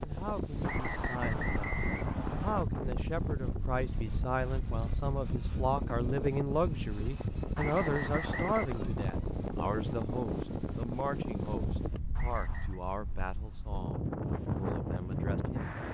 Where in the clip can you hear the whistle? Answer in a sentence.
The whistle can be heard from 0.6 to 2.6 s, from 7.5 to 8.7 s and from 12.2 to 12.8 s.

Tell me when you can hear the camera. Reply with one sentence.
You can't hear the camera here.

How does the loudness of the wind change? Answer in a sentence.
The loudness of the wind stays about the same.